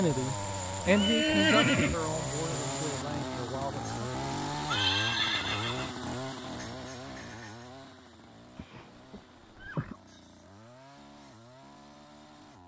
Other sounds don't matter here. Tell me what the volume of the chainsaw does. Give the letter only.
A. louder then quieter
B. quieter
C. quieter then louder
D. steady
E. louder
B.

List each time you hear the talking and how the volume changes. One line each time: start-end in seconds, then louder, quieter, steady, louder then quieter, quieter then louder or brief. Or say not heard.
0.0-4.1 quieter.